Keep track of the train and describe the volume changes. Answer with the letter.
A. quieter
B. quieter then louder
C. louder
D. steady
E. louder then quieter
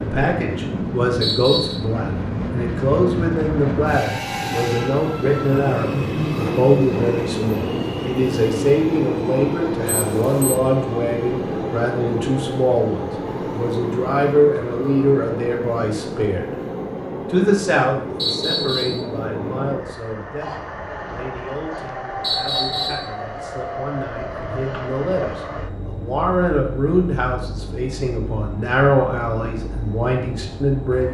A.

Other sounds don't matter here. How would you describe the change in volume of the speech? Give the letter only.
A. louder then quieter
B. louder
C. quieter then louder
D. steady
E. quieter
C.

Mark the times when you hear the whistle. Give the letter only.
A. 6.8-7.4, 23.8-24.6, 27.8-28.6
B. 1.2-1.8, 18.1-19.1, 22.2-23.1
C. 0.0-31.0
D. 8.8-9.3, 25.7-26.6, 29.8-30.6
B.